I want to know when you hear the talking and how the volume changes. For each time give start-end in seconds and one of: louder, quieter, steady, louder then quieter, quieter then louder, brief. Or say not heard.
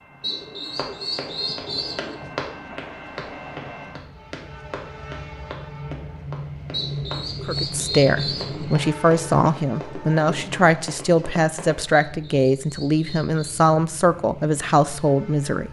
7.5-15.6 steady.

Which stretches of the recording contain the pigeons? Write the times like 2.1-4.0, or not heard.
0.2-2.1, 6.7-8.7, 11.9-13.7.